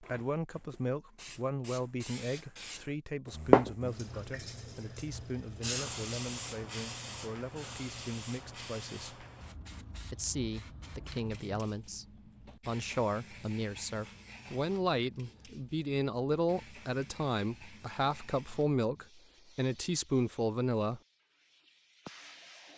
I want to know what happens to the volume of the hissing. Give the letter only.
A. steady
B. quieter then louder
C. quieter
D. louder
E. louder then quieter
C.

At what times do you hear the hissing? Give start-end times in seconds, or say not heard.
0.0-22.7.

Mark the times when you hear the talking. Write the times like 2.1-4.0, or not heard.
0.0-9.2, 10.1-21.0.